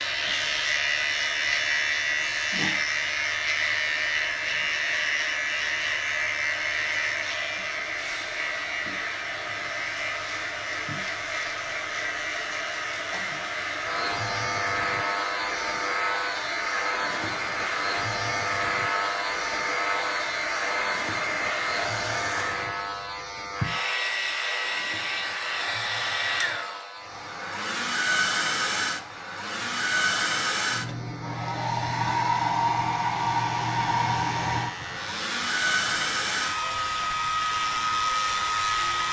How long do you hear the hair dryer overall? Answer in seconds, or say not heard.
39 s.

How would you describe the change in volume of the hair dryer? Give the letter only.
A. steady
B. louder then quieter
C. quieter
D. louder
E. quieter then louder
D.